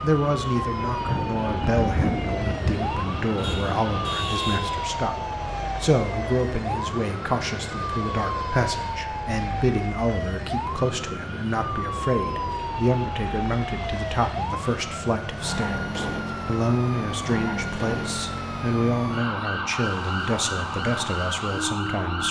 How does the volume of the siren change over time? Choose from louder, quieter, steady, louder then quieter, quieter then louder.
steady.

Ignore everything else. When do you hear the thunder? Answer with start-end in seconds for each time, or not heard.
1.1-4.2.